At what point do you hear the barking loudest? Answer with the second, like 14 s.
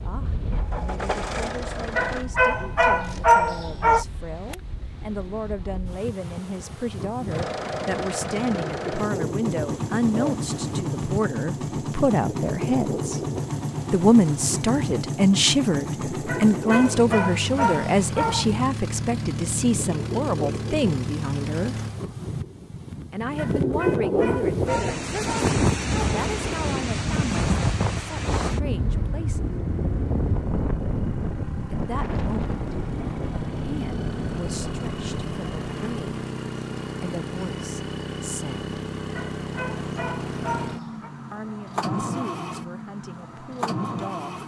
3 s.